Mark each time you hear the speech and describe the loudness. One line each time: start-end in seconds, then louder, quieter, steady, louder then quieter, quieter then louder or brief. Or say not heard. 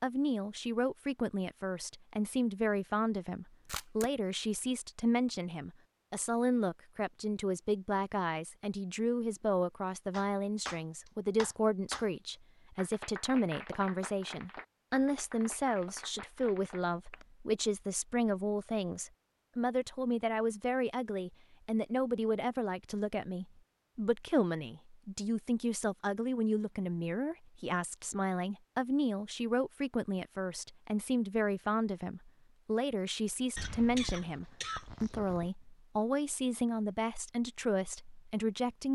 0.0-38.9 steady.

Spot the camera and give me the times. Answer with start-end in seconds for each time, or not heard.
3.5-4.1.